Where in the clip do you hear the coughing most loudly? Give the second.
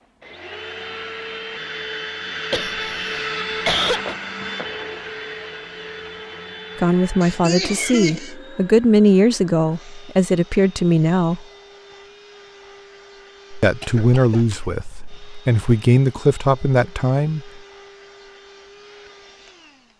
4 s.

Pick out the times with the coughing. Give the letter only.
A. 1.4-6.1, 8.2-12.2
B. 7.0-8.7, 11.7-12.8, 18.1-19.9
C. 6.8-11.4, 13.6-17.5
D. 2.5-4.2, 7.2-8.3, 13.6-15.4
D.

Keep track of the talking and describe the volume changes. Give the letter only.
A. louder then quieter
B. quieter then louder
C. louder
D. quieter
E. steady
E.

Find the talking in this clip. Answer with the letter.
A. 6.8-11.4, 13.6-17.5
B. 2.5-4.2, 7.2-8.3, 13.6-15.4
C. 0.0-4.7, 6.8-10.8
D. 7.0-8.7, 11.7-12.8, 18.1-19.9
A.